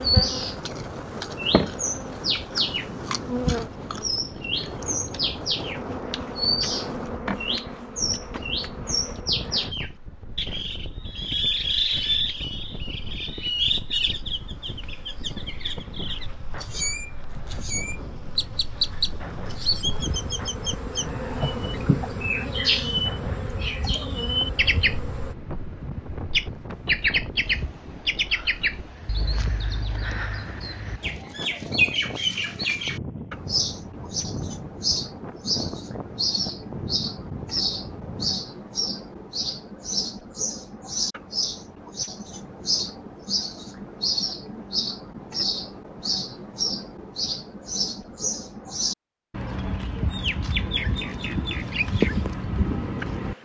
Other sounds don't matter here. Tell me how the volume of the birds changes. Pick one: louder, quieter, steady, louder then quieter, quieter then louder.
steady.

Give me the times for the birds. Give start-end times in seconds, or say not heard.
0.0-53.4.